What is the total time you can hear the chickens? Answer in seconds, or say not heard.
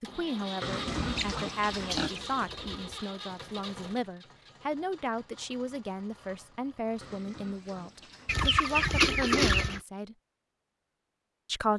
4 s.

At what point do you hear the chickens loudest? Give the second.
9 s.